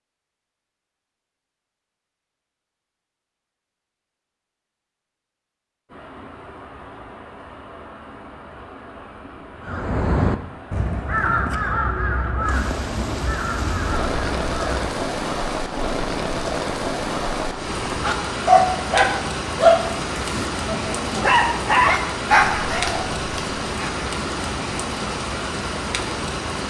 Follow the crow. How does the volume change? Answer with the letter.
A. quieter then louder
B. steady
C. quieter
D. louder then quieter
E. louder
C.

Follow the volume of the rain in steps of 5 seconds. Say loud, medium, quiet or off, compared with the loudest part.
off, quiet, loud, loud, loud, loud.